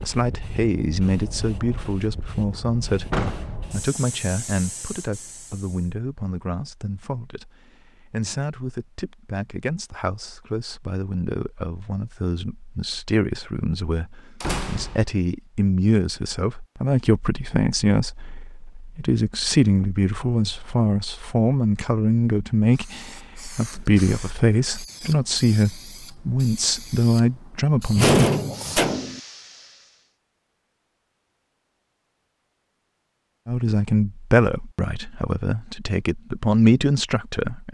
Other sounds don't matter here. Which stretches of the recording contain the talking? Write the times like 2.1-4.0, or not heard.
0.1-28.1, 33.5-37.7.